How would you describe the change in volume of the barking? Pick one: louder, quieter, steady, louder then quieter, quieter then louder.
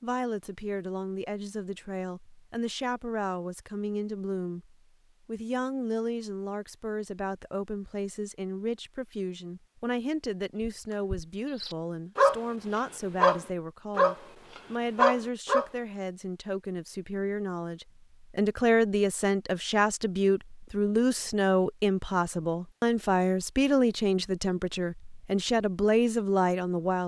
louder.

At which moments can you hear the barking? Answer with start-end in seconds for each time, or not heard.
10.6-15.7.